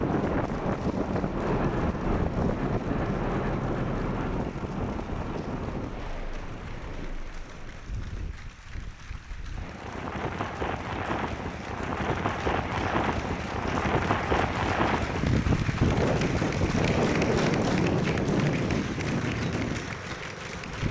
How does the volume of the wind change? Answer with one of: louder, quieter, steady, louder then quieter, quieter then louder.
quieter then louder.